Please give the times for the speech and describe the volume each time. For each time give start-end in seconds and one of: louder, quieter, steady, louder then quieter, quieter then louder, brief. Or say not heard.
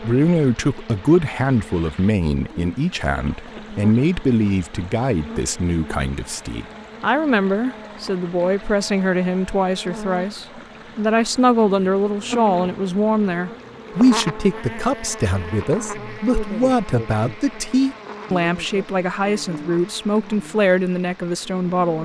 0.0-22.0 steady.